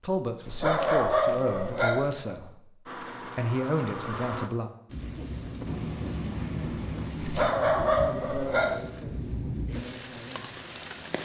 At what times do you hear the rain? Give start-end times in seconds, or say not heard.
4.9-11.2.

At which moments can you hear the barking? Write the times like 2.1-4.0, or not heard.
0.5-2.0, 7.2-8.8.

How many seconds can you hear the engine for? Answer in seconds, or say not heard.
2 s.